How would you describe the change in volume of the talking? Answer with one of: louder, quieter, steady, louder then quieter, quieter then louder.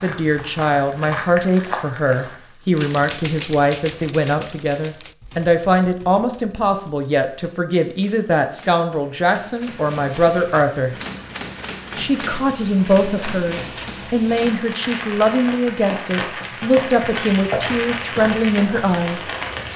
steady.